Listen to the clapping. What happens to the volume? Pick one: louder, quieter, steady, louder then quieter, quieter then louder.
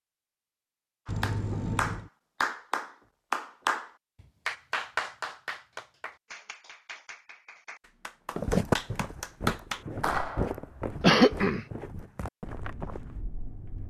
quieter then louder.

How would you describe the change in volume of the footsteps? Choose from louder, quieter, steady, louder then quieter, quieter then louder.
quieter.